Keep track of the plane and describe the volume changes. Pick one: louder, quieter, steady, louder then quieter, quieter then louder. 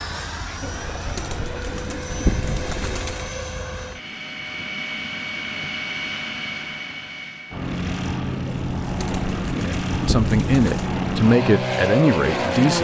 louder.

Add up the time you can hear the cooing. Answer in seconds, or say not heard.
5 s.